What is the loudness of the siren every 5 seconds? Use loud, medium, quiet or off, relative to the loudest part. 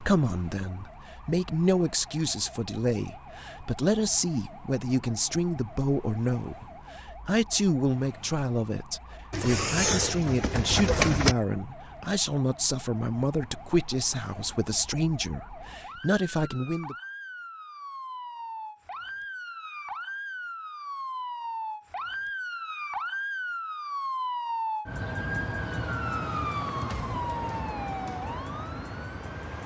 quiet, quiet, quiet, medium, loud, loud.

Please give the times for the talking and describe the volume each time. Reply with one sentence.
You can hear the talking from 0.0 to 16.9 s, at a steady volume.